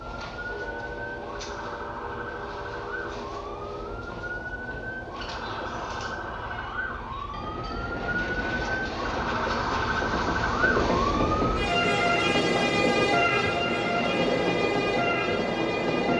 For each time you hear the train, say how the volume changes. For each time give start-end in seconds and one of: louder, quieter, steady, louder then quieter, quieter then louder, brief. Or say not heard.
0.0-16.1 louder.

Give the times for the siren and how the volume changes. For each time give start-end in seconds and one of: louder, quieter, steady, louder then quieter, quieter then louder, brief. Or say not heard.
0.0-16.1 louder.